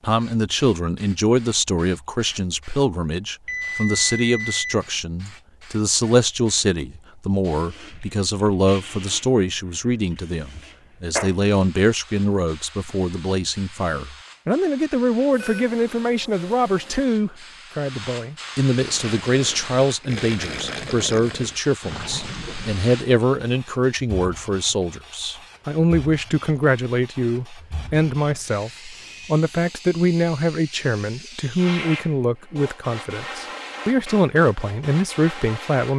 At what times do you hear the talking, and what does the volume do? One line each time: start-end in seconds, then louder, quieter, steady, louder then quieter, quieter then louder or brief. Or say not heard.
0.0-35.9 steady.